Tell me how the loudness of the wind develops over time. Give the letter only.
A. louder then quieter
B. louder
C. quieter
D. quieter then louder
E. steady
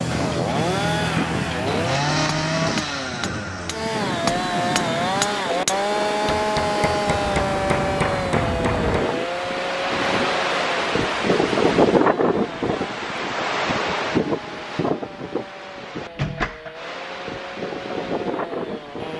A.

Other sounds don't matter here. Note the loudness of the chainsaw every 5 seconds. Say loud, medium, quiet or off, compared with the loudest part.
loud, loud, medium, quiet.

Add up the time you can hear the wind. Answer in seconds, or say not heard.
19 s.